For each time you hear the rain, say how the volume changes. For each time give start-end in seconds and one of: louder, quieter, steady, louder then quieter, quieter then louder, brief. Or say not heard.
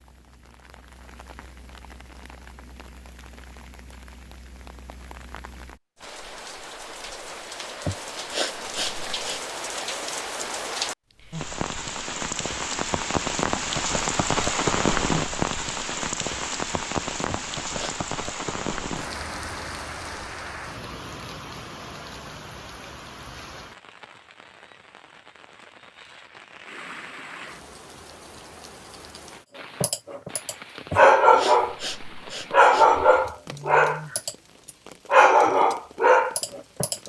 0.0-37.0 louder then quieter.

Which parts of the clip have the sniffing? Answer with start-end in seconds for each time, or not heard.
7.8-9.4, 17.2-18.1, 30.9-33.0.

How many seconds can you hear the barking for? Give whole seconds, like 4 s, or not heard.
6 s.